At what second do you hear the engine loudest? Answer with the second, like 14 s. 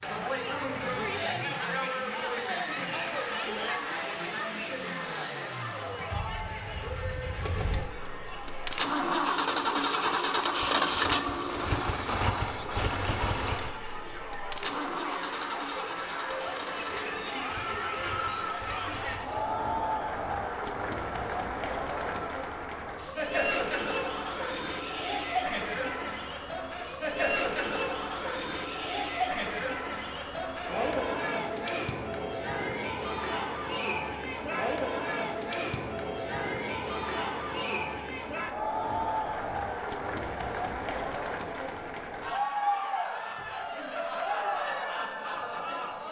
11 s.